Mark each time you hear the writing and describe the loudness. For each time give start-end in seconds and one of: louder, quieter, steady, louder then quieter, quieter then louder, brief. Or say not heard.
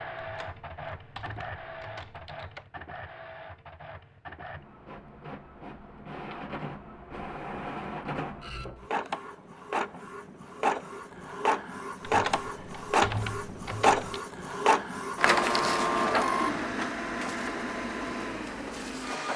not heard.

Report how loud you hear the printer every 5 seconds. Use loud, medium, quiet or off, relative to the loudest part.
quiet, medium, loud, loud.